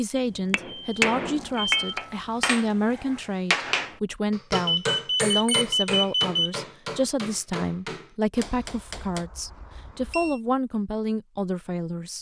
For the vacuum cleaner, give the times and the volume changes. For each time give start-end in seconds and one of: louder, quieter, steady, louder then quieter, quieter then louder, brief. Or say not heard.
not heard.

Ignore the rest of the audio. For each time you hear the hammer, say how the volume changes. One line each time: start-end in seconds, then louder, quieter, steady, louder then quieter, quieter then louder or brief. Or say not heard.
0.5-9.2 quieter.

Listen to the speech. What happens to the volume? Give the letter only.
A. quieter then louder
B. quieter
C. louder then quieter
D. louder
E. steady
E.